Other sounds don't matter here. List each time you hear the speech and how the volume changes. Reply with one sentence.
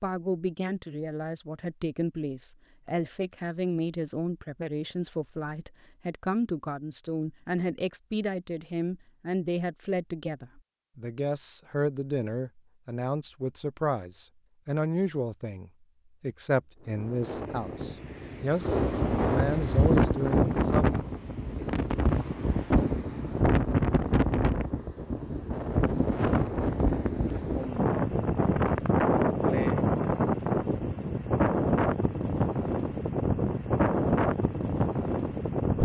You can hear the speech from 0.0 to 20.9 s, at a steady volume.